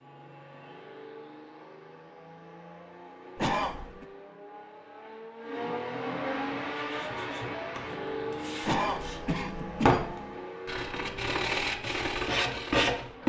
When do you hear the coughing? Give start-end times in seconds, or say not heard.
3.4-4.0, 8.6-10.2.